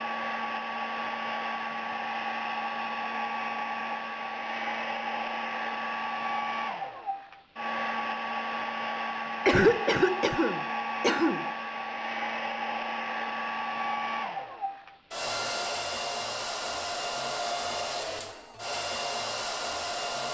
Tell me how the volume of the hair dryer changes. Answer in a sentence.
The loudness of the hair dryer stays about the same.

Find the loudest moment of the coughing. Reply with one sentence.
The volume of the coughing peaks at 10 seconds.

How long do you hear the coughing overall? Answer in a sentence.
The coughing can be heard for 2 seconds in total.